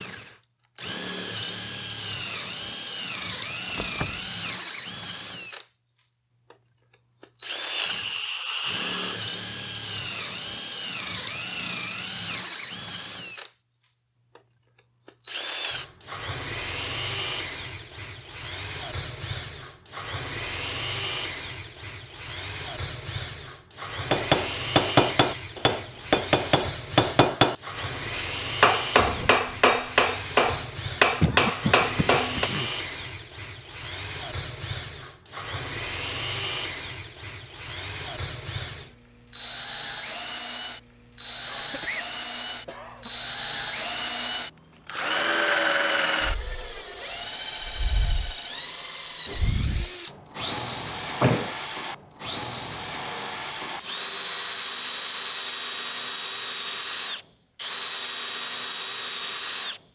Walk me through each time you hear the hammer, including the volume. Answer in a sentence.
You can hear the hammer from 24.1 to 32.5 s, at a steady volume.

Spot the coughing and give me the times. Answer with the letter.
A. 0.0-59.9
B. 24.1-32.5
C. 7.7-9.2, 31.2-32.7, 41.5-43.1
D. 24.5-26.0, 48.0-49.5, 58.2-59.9
C.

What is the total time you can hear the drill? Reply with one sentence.
You can hear the drill for 60 seconds altogether.